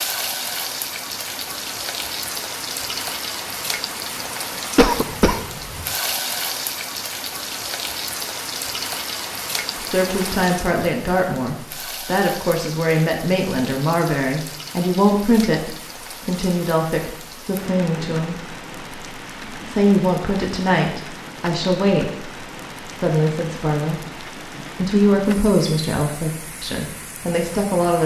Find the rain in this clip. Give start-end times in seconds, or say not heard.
0.0-28.0.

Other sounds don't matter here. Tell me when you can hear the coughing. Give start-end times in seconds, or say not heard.
4.8-5.9.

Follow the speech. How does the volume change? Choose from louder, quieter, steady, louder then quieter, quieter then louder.
steady.